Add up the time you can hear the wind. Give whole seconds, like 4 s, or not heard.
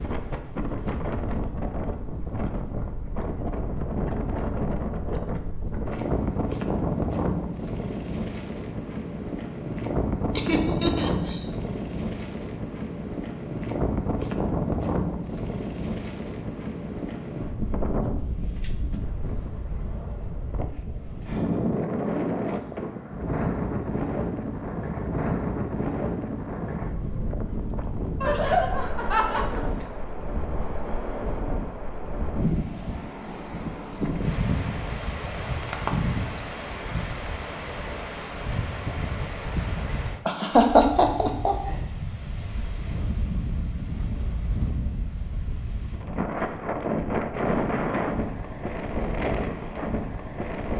51 s.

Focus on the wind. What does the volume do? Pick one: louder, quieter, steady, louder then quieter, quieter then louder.
steady.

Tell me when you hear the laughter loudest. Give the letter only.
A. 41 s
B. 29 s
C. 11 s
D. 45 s
A.